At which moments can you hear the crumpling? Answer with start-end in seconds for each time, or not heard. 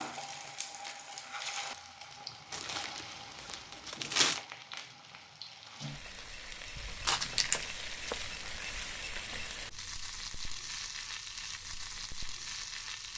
2.5-4.5, 7.0-7.7.